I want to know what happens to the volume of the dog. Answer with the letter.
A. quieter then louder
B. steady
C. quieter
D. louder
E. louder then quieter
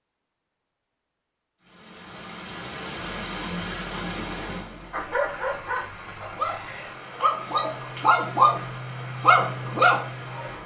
D.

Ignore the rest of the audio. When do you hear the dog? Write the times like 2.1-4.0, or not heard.
4.9-10.5.